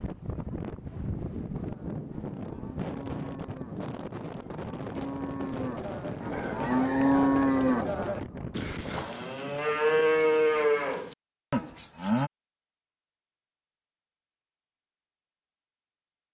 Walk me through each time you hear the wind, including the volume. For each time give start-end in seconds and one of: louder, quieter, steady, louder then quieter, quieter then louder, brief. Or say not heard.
0.0-9.1 steady.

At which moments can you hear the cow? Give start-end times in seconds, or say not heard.
1.6-12.3.